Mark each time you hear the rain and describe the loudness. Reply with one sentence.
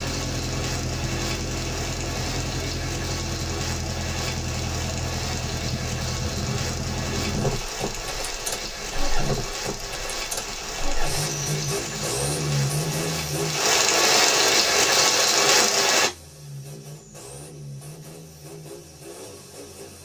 The rain can be heard from 0.0 to 16.1 s, getting louder.